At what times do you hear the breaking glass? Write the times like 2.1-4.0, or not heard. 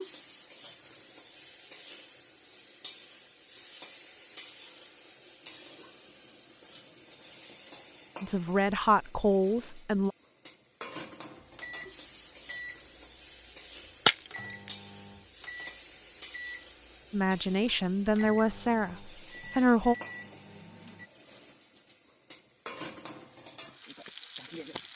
14.1-14.8.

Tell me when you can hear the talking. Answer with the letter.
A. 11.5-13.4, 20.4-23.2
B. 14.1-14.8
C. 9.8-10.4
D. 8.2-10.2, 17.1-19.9
D.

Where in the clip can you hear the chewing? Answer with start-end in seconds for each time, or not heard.
not heard.